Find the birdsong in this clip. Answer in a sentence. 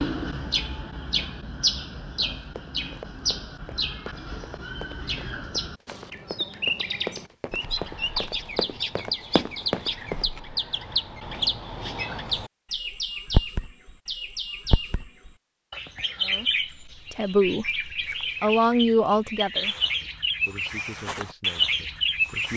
You can hear the birdsong from 0.0 to 22.5 s.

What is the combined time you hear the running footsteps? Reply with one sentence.
You can hear the running footsteps for 8 seconds altogether.